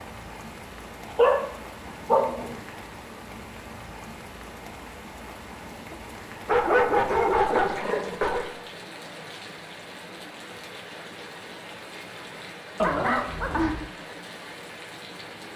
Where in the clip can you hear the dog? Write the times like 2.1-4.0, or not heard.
1.1-2.5, 6.5-8.5, 12.8-13.8.